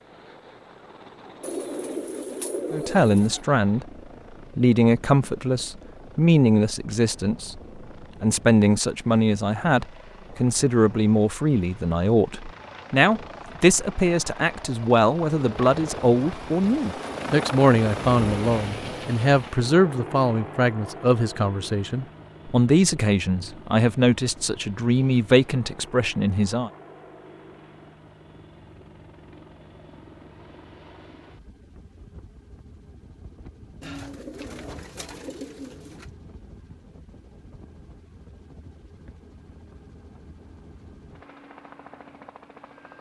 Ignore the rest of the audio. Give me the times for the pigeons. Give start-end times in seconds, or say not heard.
1.4-3.5, 33.8-36.1.